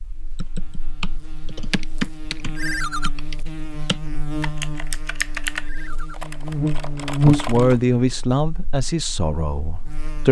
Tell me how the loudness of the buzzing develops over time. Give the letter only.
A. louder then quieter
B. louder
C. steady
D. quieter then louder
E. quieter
A.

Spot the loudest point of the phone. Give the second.
3 s.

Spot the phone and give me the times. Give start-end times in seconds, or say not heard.
2.5-3.1, 5.6-6.2.